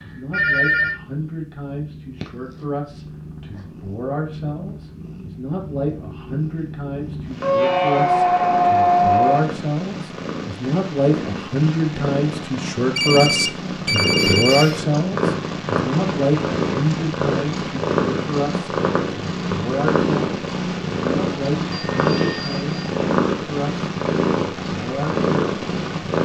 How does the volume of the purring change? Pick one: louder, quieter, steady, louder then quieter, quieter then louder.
louder.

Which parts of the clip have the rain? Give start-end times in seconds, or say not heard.
not heard.